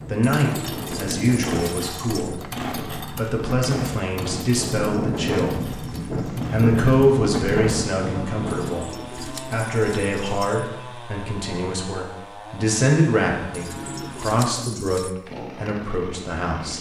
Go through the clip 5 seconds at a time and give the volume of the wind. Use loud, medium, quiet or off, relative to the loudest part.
medium, loud, off, off.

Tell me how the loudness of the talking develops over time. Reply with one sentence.
The loudness of the talking stays about the same.